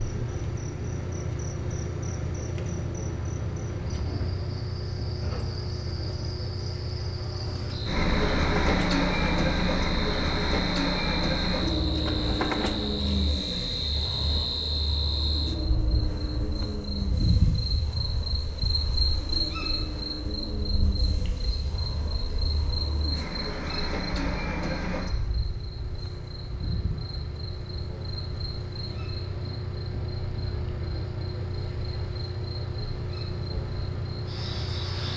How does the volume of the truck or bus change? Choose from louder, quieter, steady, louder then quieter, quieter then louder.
louder then quieter.